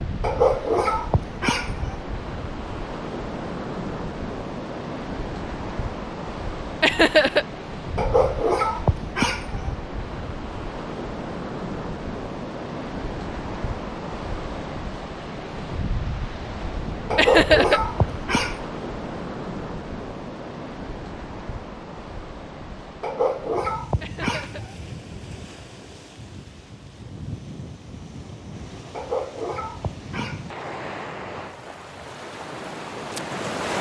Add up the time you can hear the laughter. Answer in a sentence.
The laughter can be heard for 2 seconds in total.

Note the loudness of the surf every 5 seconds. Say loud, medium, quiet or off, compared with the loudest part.
loud, loud, loud, loud, medium, medium, loud.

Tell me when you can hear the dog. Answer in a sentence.
The dog can be heard from 0.2 to 1.9 s, from 8.0 to 9.7 s, from 17.1 to 18.6 s, from 23.0 to 24.7 s and from 28.9 to 30.6 s.